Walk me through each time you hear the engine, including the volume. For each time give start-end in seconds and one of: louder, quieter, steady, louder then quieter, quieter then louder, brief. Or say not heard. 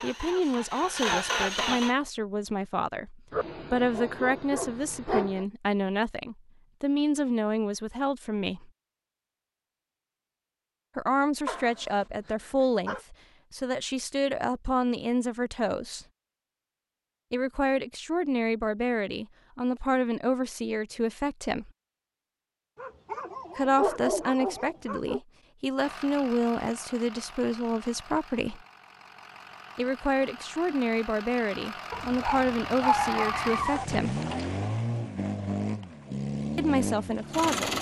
0.0-1.9 brief
25.8-37.7 louder.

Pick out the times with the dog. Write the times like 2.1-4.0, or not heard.
3.3-5.5, 11.4-13.0, 22.8-25.2, 31.9-33.9.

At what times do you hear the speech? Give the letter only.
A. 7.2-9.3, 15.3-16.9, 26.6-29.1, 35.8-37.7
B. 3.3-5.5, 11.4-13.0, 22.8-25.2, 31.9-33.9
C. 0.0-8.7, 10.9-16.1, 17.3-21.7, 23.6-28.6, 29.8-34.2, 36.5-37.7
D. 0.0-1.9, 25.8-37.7
C.